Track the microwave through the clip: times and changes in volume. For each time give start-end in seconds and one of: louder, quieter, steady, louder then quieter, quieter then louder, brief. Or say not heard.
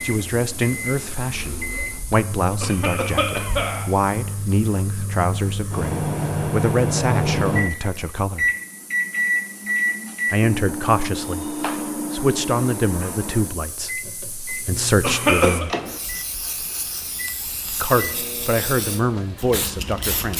0.0-20.3 louder then quieter.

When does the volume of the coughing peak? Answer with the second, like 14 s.
15 s.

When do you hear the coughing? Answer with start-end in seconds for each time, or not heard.
2.6-3.9, 15.0-15.7.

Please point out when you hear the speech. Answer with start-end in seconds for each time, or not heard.
0.0-8.5, 10.3-15.8, 17.8-20.3.